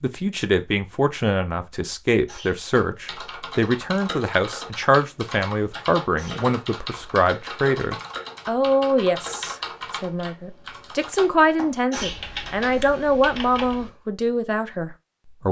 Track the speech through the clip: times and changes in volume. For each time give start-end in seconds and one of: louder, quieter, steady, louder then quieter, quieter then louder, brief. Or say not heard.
0.0-15.4 steady.